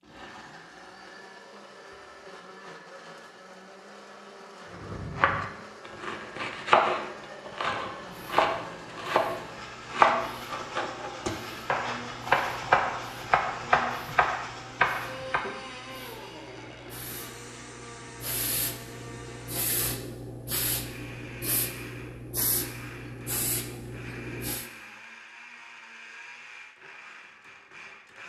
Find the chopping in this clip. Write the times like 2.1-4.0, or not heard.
4.7-15.4.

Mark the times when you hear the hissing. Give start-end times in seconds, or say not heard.
8.1-24.7.